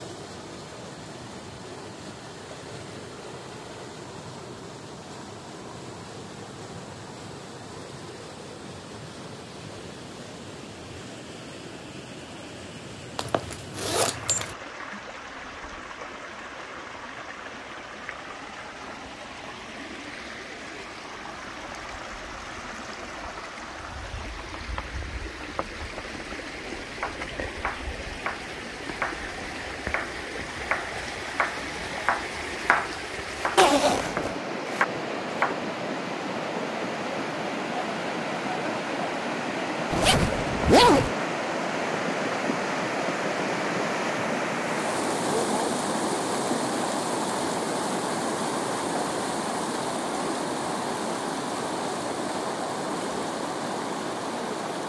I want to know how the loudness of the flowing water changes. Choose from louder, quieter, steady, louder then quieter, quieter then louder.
louder.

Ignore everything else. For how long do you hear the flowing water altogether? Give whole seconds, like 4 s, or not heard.
55 s.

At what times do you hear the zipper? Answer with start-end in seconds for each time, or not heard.
13.2-14.6, 33.5-34.4, 39.9-41.1.